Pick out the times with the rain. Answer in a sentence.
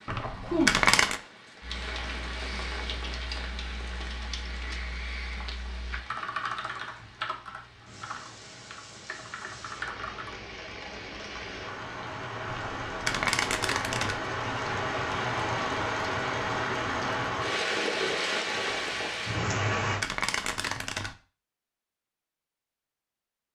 The rain can be heard from 0.0 to 20.1 s.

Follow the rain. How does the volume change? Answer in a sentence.
The loudness of the rain goes down, then up.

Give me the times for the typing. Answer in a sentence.
The typing can be heard from 1.6 to 10.4 s.